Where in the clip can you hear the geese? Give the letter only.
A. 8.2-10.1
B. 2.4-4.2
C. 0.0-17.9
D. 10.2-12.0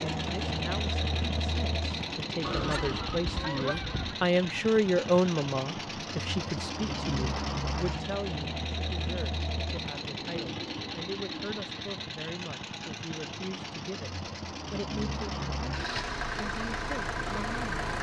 B.